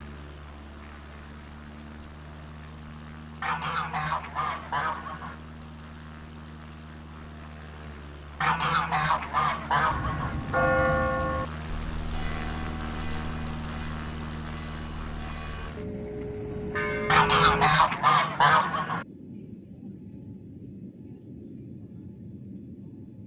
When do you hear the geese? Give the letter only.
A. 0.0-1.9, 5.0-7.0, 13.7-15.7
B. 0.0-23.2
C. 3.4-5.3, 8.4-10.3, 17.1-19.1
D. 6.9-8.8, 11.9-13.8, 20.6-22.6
C.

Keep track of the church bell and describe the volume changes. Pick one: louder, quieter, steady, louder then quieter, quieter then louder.
quieter then louder.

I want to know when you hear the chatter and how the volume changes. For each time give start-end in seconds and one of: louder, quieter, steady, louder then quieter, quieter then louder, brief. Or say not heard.
not heard.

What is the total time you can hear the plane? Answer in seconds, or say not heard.
23 s.